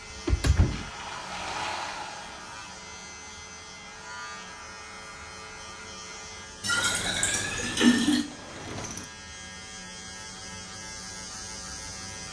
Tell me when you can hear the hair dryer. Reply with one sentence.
The hair dryer can be heard from 0.0 to 6.5 s.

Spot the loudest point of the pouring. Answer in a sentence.
The loudest moment of the pouring is at 8 seconds.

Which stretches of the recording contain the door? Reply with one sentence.
You can hear the door from 0.1 to 0.9 s and from 6.7 to 9.1 s.